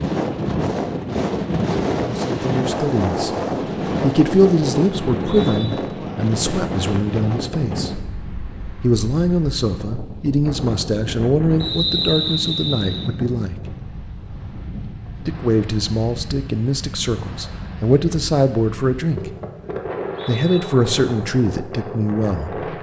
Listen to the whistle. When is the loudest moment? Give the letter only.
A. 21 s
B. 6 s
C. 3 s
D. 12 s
D.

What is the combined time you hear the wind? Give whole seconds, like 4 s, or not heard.
23 s.